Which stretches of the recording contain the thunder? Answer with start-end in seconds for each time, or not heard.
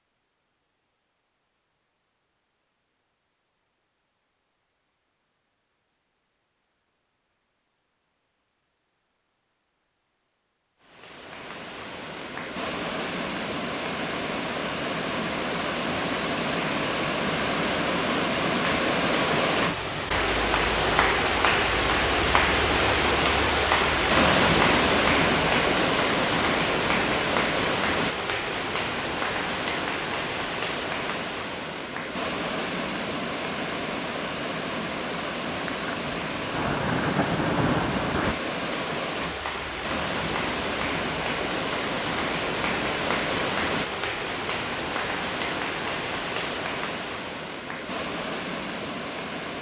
35.6-38.4.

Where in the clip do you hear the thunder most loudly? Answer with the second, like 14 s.
38 s.